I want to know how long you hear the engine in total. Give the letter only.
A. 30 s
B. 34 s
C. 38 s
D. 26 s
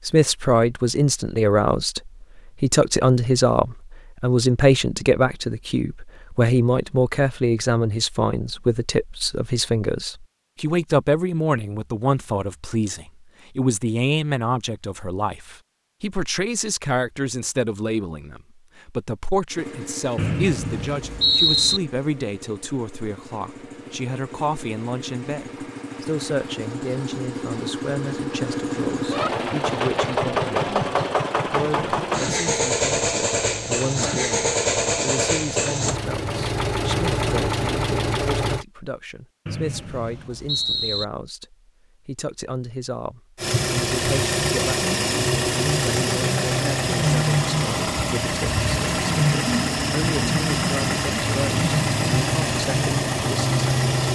A.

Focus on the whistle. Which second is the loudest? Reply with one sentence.
The volume of the whistle peaks at 21 seconds.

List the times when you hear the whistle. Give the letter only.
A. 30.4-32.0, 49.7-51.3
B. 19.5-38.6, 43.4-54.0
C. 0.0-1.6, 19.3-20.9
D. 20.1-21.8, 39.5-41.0
D.